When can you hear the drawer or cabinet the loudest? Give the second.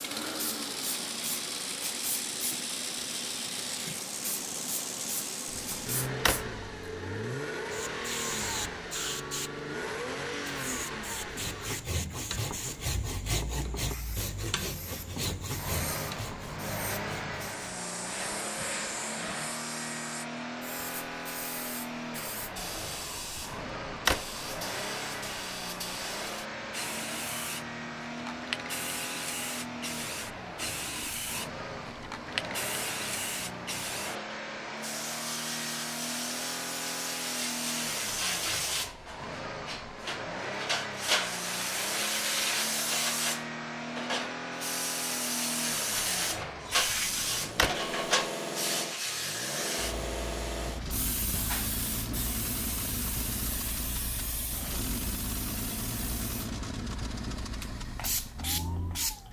24 s.